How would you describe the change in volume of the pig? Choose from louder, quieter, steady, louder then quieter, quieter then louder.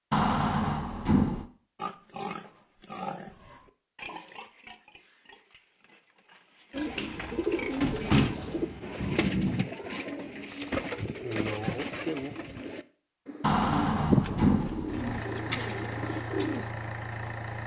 quieter then louder.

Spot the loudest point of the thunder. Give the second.
9 s.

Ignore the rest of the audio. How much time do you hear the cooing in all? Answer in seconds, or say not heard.
10 s.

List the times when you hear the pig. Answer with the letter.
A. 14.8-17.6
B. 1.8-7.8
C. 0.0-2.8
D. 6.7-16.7
B.